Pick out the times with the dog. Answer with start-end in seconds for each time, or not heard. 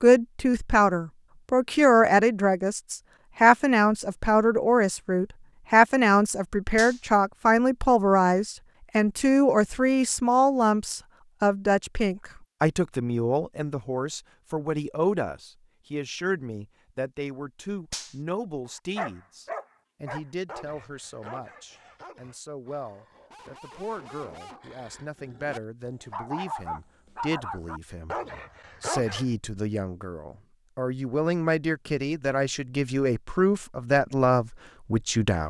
18.6-29.3.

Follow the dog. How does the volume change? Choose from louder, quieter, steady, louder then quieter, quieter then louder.
quieter then louder.